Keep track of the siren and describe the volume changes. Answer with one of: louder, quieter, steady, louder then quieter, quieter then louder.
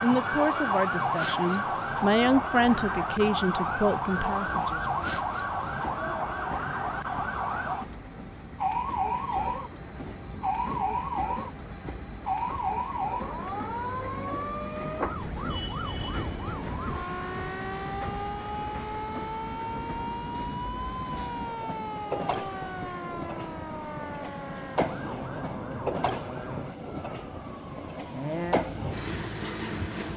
quieter.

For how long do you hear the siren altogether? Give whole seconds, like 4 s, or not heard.
30 s.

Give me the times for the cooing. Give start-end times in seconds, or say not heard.
not heard.